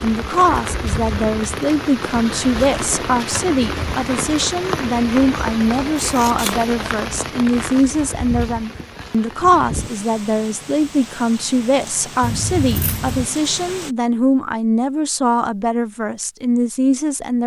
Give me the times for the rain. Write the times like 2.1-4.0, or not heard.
0.0-13.9.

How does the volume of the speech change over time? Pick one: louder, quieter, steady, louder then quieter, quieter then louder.
steady.